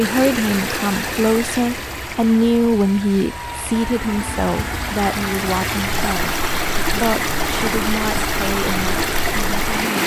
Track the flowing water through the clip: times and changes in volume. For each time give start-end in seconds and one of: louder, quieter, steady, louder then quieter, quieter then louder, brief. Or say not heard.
0.0-10.0 quieter then louder.